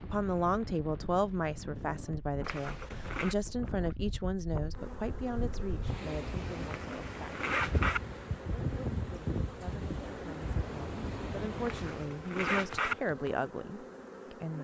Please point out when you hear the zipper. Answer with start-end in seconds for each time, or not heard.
2.4-3.4, 6.7-8.0, 11.7-12.9.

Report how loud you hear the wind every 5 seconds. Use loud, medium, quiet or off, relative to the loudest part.
medium, loud, loud.